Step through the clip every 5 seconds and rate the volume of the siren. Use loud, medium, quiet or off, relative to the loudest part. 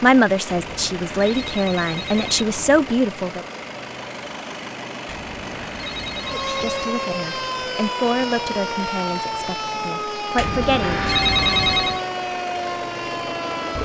off, loud, loud.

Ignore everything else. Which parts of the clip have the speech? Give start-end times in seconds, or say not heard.
0.0-3.5, 6.3-11.1.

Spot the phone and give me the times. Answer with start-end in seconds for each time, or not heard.
0.5-3.0, 5.0-6.9, 10.3-12.0.